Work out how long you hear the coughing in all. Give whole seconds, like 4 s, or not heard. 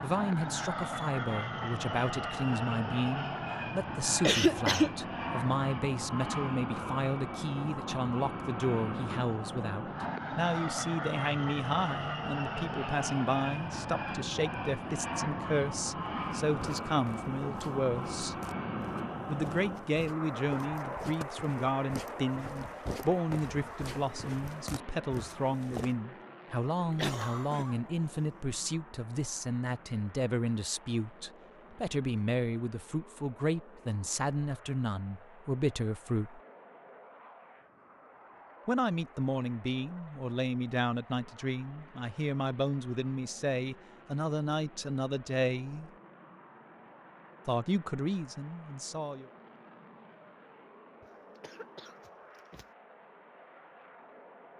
3 s.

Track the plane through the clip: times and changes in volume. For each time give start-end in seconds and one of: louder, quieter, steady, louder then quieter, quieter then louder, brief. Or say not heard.
0.0-54.5 quieter.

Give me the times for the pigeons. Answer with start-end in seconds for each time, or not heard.
not heard.